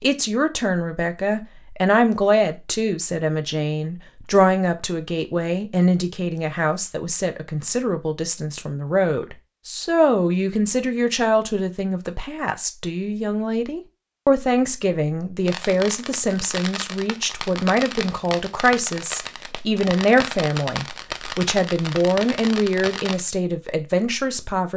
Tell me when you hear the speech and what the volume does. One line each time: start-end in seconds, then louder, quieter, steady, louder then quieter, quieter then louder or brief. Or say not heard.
0.0-24.7 steady.